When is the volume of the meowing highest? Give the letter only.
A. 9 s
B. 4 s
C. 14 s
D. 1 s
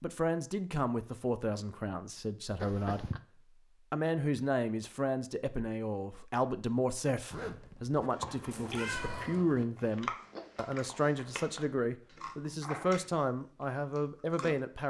A.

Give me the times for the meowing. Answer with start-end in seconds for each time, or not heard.
2.5-3.2, 8.5-9.4.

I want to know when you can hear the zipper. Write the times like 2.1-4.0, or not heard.
7.3-8.1.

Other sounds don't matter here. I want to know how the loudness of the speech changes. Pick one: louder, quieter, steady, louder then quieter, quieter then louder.
steady.